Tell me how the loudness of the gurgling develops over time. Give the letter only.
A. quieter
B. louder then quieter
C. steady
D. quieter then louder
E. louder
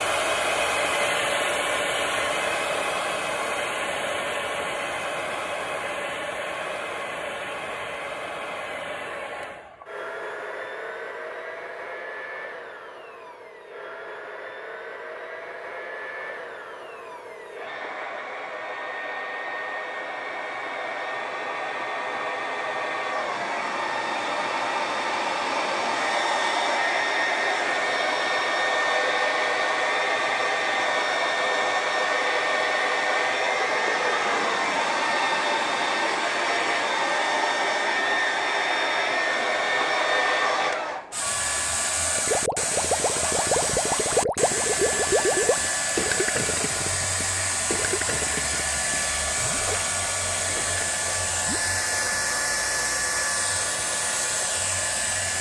A.